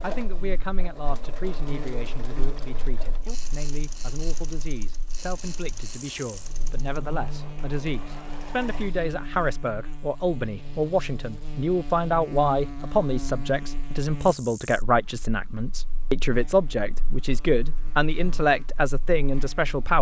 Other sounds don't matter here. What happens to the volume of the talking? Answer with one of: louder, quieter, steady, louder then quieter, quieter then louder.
louder.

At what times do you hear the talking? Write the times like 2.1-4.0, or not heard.
0.0-19.9.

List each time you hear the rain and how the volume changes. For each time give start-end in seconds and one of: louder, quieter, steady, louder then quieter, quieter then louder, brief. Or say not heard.
not heard.